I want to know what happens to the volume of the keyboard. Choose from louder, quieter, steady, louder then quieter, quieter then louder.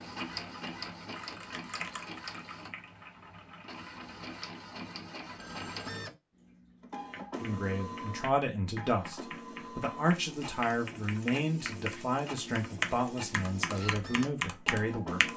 quieter then louder.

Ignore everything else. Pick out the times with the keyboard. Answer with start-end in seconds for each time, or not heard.
0.1-4.6, 7.1-15.3.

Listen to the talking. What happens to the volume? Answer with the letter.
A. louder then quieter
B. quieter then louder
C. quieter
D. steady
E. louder
D.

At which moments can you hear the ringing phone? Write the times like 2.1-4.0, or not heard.
5.3-6.0.